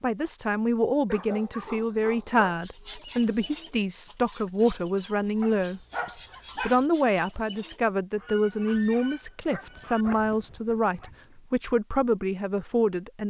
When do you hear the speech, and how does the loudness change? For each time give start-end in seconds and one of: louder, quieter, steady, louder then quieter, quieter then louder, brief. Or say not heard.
0.0-13.2 steady.